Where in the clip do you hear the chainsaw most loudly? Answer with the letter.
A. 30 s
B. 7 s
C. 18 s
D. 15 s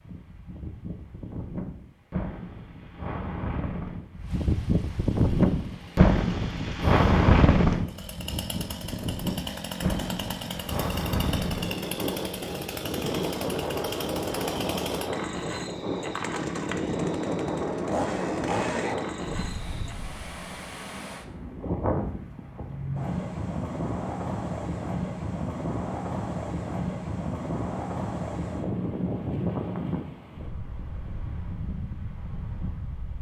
C.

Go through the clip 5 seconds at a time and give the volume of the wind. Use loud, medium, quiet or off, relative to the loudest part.
medium, loud, medium, medium, medium, medium, quiet.